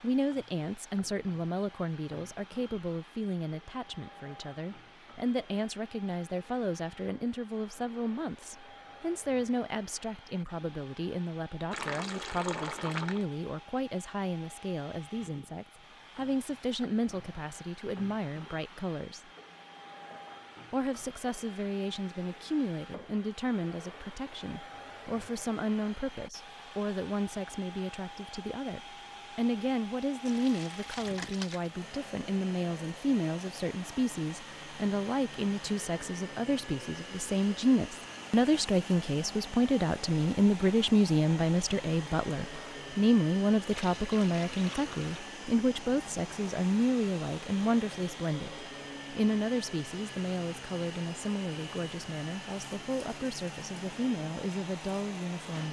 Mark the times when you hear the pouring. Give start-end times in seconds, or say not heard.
11.7-13.2, 30.2-31.7, 43.6-45.2.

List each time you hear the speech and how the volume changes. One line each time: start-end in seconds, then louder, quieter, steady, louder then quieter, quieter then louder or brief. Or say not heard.
0.0-19.2 steady
20.7-55.6 louder then quieter.